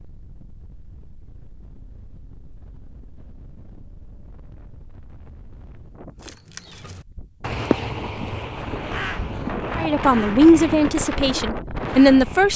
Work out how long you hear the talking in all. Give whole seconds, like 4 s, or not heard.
3 s.